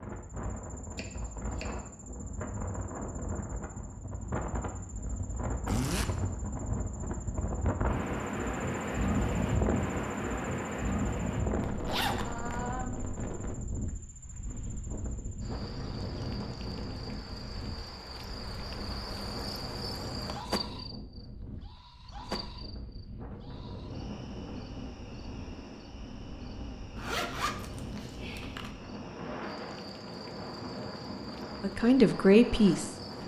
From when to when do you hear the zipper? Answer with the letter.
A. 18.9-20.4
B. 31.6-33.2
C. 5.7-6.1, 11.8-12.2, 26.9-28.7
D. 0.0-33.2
C.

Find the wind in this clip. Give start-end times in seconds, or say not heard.
0.0-33.2.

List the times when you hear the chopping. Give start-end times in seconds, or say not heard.
0.9-1.8.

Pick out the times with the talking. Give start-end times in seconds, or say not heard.
31.6-33.2.